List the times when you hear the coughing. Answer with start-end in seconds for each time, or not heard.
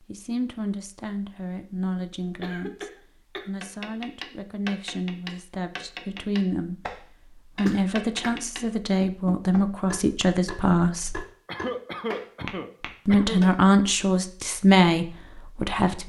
2.4-3.5, 7.6-8.4, 11.4-13.4.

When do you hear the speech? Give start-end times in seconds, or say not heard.
0.1-11.2, 13.1-16.0.